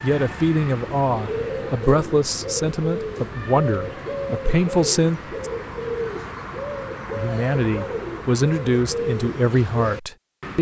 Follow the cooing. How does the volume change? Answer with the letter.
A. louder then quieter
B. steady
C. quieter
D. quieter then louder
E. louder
B.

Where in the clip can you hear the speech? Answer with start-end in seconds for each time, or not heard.
0.0-5.5, 7.1-10.5.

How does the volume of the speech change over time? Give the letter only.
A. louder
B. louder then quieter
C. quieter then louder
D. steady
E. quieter
D.